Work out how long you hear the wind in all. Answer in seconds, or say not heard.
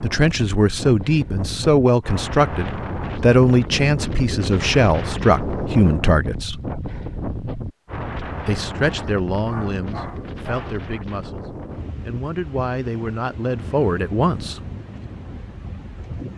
16 s.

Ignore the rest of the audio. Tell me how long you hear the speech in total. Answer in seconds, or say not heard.
13 s.